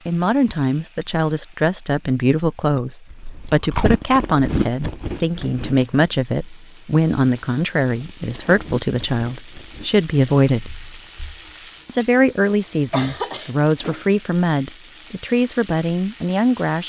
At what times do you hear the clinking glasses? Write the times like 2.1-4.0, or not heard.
not heard.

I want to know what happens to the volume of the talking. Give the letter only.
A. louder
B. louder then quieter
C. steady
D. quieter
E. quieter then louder
C.